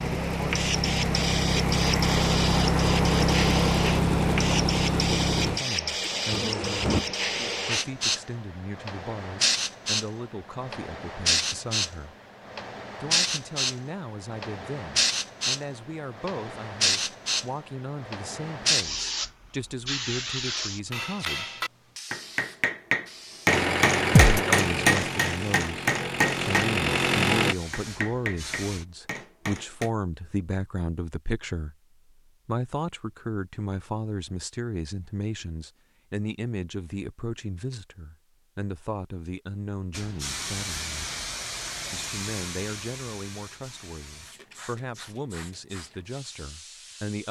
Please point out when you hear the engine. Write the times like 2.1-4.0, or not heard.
0.0-7.0, 23.4-27.6.